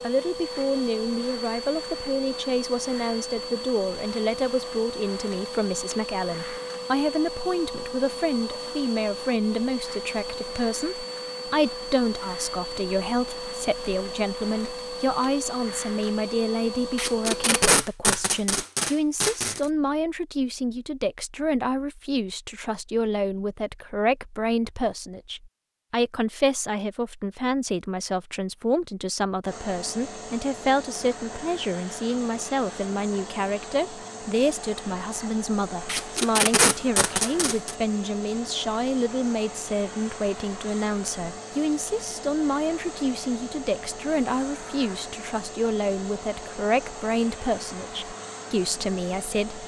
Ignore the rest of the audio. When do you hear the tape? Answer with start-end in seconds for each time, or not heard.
16.9-19.6, 35.9-37.8.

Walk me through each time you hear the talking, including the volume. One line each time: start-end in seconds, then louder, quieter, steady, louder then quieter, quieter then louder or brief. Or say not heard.
0.0-49.6 steady.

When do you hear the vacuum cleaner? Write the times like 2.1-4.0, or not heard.
0.0-17.8, 29.4-49.6.